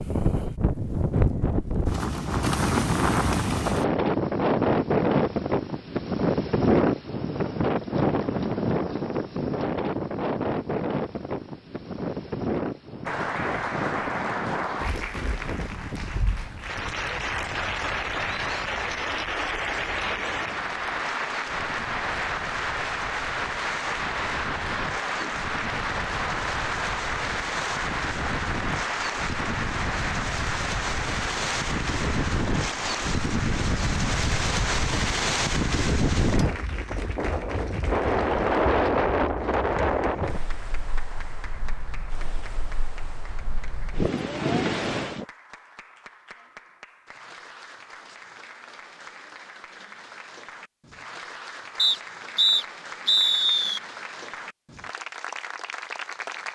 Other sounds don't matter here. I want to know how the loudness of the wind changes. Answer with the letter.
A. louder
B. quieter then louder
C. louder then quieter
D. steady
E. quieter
B.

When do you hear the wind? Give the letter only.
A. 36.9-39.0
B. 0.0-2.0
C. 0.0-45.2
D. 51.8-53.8
C.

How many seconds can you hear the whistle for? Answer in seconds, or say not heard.
2 s.